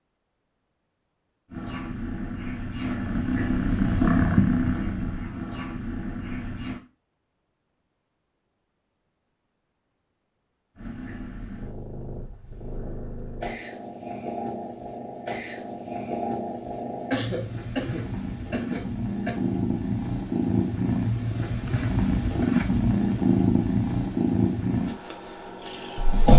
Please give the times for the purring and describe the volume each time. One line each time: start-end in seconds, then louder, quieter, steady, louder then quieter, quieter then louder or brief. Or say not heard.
1.5-6.8 louder then quieter
10.8-26.3 louder.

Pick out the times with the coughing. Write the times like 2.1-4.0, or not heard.
17.1-19.5.